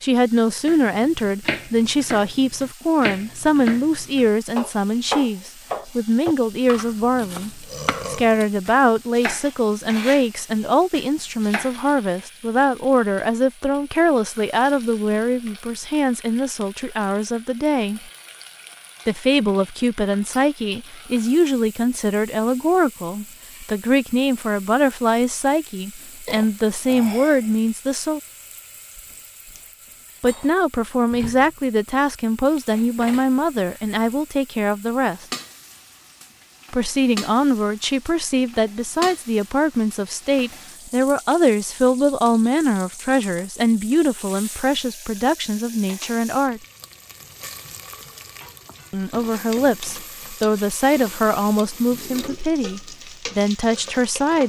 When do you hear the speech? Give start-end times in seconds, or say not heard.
0.0-18.0, 19.1-28.2, 30.2-35.2, 36.7-46.6, 48.9-54.4.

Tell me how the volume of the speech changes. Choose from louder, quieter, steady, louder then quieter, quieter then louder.
steady.